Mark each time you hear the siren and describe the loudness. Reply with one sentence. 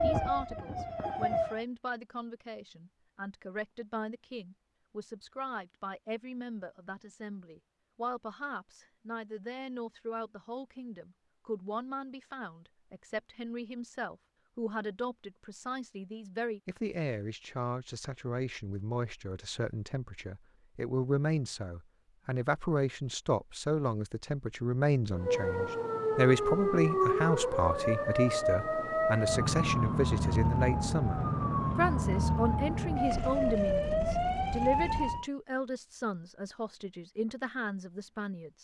The siren can be heard briefly from 0.0 to 1.6 s; and from 25.1 to 35.2 s, at a steady volume.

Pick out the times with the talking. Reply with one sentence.
The talking can be heard from 0.0 to 38.6 s.